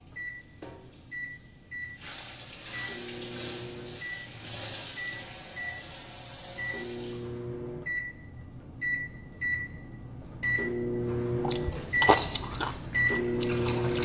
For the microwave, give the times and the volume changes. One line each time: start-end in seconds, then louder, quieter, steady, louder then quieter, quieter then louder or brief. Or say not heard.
0.0-14.0 louder.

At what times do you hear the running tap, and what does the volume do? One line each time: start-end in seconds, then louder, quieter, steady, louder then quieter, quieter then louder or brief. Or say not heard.
0.0-7.3 louder
11.6-14.0 brief.